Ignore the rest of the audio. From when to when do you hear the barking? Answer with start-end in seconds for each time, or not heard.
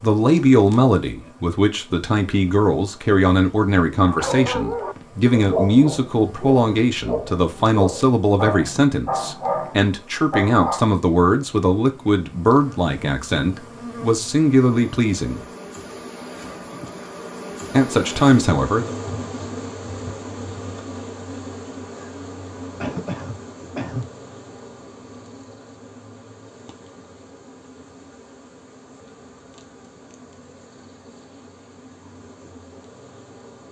4.0-10.8.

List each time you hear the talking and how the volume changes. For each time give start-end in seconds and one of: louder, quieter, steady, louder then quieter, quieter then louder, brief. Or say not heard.
0.0-15.4 steady
17.7-18.9 brief.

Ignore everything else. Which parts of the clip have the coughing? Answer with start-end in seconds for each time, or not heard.
4.2-5.0, 22.8-24.1.